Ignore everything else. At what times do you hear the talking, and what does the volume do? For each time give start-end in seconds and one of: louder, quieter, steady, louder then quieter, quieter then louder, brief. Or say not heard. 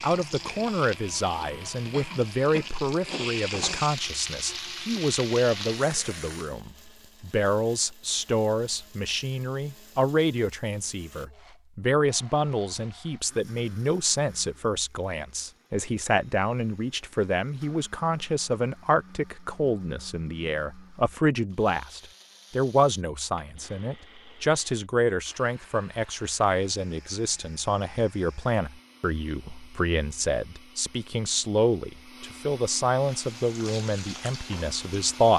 0.0-35.3 steady.